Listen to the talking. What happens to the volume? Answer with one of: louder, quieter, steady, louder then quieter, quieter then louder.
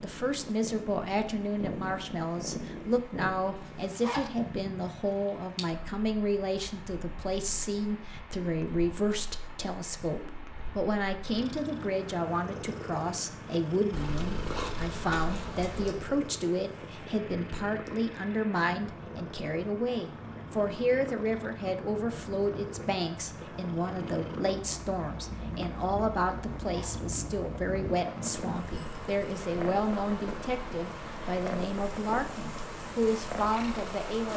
steady.